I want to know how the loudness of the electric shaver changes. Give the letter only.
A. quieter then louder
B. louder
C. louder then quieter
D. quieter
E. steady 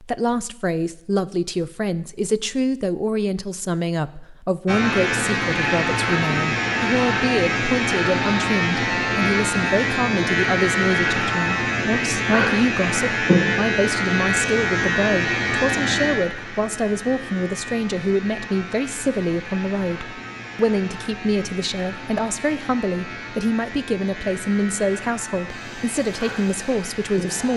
D.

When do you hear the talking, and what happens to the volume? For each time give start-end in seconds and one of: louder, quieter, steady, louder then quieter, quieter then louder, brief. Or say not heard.
0.0-27.5 steady.